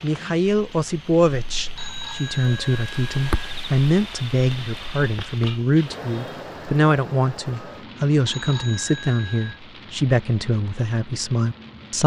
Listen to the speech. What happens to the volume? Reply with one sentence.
The loudness of the speech stays about the same.